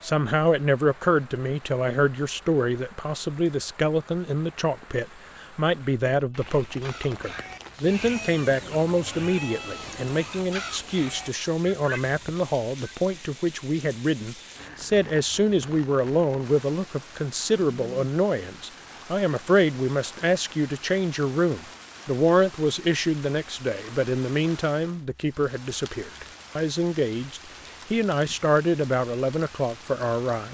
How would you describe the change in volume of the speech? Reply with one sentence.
The loudness of the speech stays about the same.